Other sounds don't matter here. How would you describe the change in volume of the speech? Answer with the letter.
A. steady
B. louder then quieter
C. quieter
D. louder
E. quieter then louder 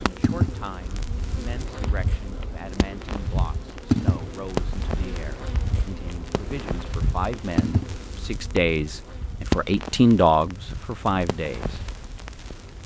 D.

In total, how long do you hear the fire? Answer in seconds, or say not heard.
13 s.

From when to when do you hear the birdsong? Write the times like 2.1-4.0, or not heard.
not heard.